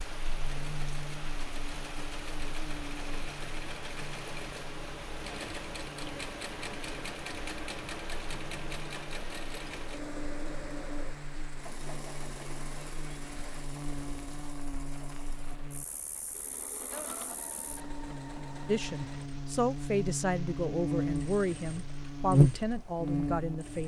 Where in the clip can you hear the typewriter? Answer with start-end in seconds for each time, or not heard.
not heard.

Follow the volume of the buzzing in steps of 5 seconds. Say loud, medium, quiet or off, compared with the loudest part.
quiet, quiet, quiet, quiet, loud.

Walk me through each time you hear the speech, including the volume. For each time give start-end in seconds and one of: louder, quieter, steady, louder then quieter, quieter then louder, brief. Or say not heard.
18.6-23.8 steady.